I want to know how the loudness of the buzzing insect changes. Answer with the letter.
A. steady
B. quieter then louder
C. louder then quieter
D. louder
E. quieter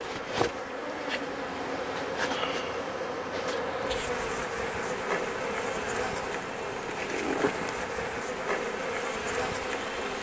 A.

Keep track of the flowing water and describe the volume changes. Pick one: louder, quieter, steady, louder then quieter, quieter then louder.
steady.